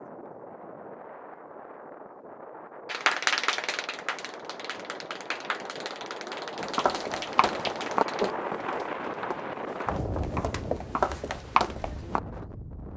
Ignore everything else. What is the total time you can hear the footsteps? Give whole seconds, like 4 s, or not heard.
6 s.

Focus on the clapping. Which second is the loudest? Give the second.
3 s.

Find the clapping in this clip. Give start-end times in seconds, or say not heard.
2.9-8.3.